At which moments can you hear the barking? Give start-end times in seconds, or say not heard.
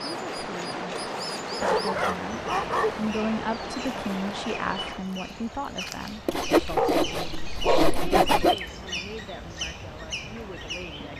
1.6-3.0, 6.8-8.0.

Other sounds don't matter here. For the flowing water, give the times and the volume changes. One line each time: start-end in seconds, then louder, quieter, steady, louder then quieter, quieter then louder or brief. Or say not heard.
0.0-11.1 quieter.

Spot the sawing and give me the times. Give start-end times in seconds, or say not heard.
0.2-1.8, 6.2-8.6.